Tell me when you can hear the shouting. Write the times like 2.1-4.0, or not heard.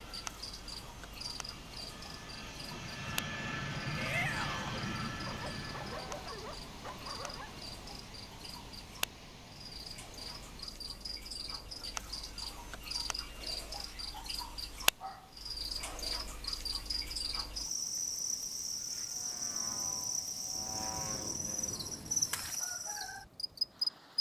4.0-4.8.